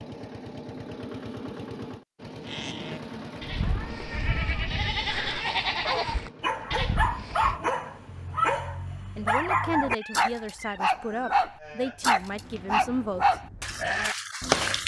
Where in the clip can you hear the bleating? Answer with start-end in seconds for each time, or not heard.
2.5-7.6, 11.6-14.8.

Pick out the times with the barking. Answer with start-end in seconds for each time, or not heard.
5.8-14.8.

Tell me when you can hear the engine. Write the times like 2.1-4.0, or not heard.
0.0-8.4.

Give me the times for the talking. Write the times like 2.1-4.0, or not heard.
9.2-13.3.